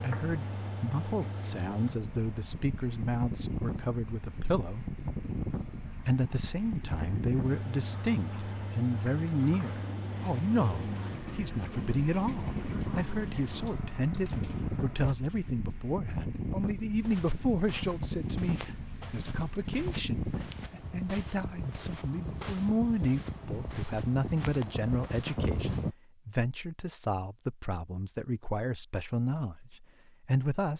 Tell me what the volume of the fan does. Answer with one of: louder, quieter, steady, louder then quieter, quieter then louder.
steady.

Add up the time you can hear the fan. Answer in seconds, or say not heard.
26 s.